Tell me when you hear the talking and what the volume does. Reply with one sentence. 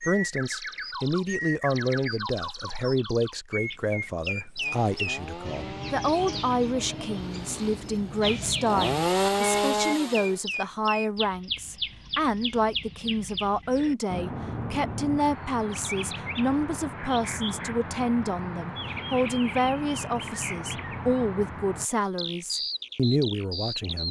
You can hear the talking from 0.1 to 24.0 s, at a steady volume.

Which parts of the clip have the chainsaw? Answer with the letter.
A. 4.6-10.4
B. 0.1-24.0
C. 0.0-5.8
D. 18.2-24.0
A.